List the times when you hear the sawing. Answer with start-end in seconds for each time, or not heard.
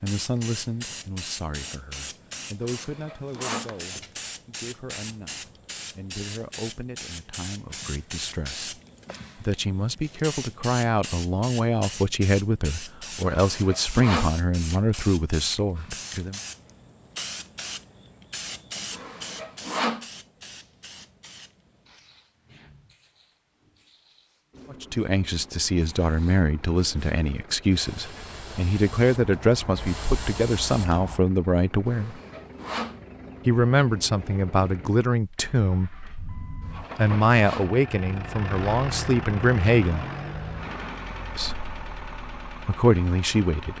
2.6-3.8, 13.3-14.3, 18.9-20.1, 31.9-33.0, 36.6-37.8.